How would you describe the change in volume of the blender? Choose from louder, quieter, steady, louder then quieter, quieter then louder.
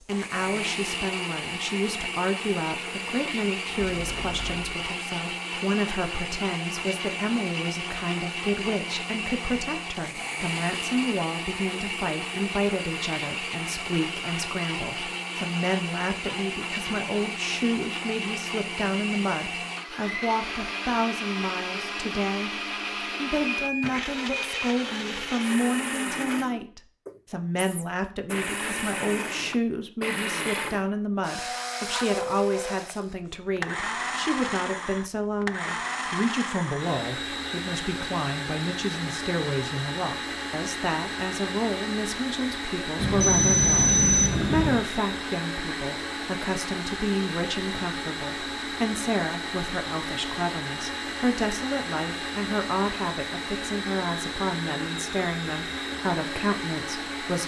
steady.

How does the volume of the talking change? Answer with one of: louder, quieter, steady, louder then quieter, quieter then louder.
steady.